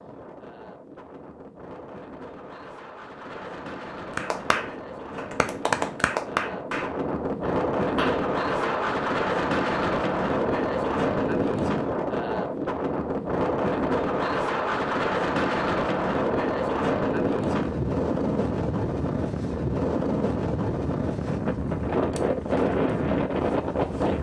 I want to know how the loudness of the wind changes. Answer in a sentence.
The loudness of the wind goes up.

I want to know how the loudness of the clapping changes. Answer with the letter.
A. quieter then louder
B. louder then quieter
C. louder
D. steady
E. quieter
B.